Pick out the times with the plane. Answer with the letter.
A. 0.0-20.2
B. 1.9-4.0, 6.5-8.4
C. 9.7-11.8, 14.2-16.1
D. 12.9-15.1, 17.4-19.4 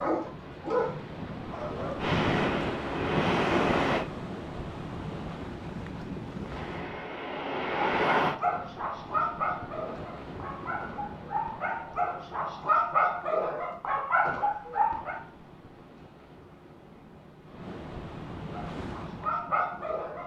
B.